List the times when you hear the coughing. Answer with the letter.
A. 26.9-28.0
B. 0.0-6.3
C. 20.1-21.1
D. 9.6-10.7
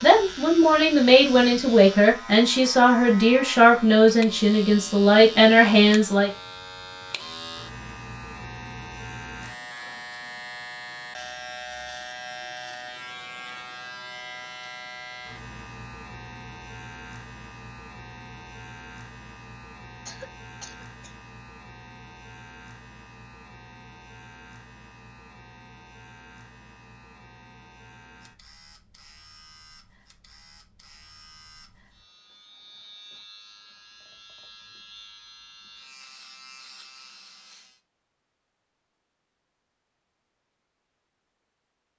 C.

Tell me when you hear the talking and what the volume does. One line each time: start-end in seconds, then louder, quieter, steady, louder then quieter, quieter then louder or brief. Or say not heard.
0.0-6.3 steady.